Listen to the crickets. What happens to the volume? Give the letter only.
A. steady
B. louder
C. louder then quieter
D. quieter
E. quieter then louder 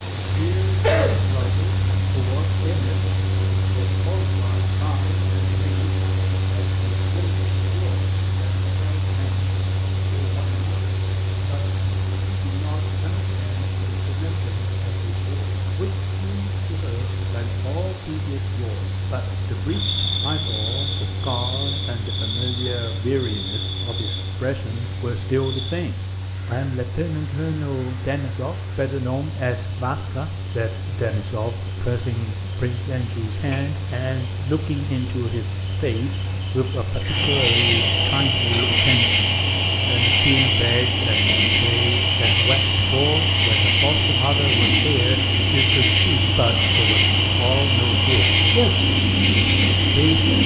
E.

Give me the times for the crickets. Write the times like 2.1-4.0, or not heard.
19.6-50.4.